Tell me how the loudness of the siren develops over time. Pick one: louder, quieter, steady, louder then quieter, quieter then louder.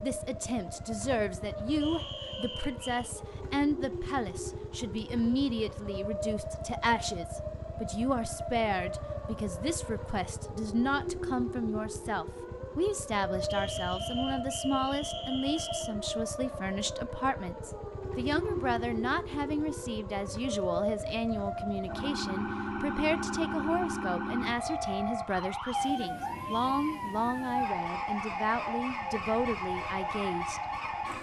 louder.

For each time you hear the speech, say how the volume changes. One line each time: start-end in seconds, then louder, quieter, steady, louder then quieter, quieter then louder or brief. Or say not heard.
0.0-30.6 steady.